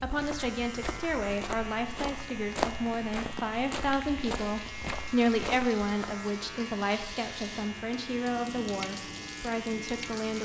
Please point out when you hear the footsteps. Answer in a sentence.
You can hear the footsteps from 0.1 to 6.2 s.